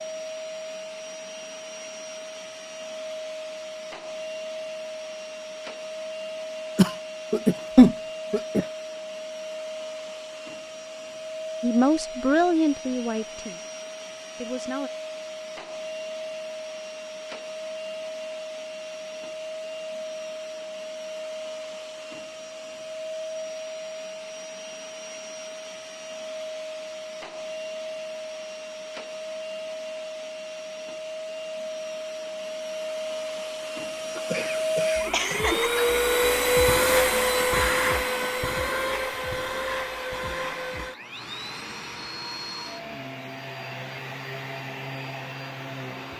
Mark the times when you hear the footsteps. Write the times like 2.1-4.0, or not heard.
not heard.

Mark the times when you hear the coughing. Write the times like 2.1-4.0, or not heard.
6.8-8.7, 34.1-35.9.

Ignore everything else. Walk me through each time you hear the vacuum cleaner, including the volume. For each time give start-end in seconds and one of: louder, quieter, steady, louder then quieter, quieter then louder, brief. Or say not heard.
0.0-46.1 louder.